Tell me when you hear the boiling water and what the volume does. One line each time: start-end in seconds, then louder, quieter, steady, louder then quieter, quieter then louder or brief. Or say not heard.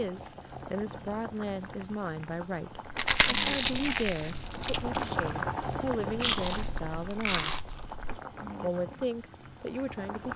0.0-10.3 louder then quieter.